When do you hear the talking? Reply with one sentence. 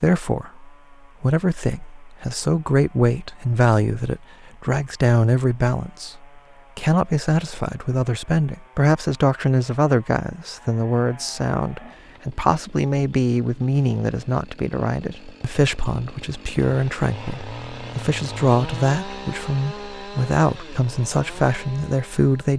The talking can be heard from 0.0 to 22.5 s.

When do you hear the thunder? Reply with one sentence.
The thunder can't be heard in this clip.